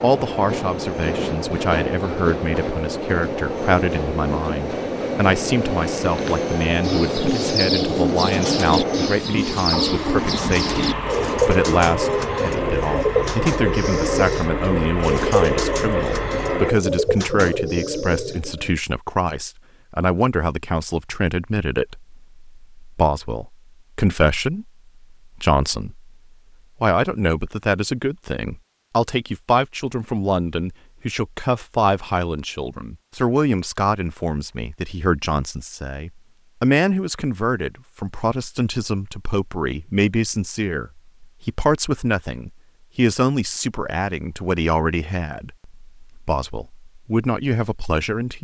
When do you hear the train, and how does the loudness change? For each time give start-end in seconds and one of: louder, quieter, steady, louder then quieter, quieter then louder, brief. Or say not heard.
0.0-16.7 steady.